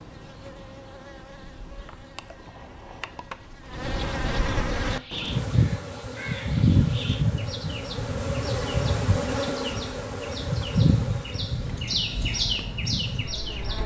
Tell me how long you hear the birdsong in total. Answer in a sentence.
You can hear the birdsong for 9 seconds altogether.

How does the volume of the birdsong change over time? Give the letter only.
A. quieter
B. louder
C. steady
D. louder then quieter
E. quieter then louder
B.